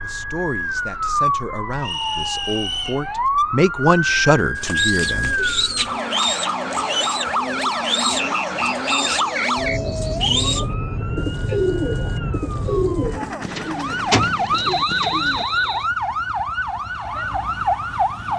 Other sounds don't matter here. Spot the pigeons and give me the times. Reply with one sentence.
The pigeons can be heard from 4.5 to 15.4 s.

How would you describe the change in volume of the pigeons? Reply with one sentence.
The loudness of the pigeons stays about the same.